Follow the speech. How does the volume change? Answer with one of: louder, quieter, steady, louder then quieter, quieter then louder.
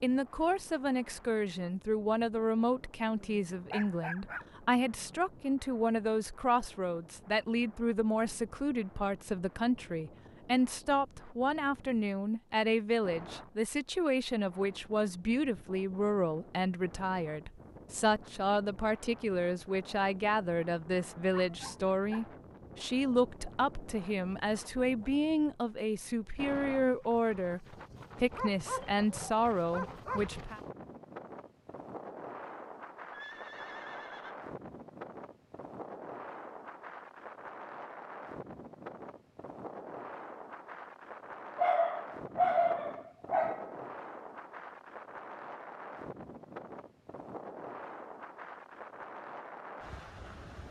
steady.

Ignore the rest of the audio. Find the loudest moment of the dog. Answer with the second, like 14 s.
43 s.